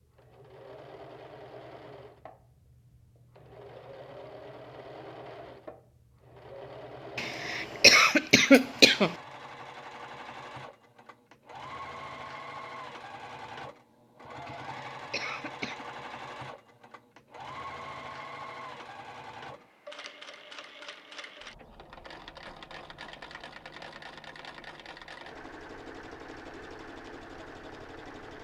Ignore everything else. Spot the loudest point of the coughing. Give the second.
8 s.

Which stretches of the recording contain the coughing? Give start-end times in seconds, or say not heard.
7.2-9.2, 14.4-15.8.